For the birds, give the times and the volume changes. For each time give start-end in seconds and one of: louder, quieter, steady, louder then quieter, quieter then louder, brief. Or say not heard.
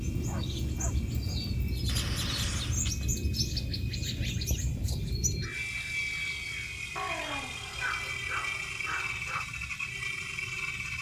0.0-10.9 quieter.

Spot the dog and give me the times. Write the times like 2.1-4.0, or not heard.
0.1-2.0, 7.0-9.4.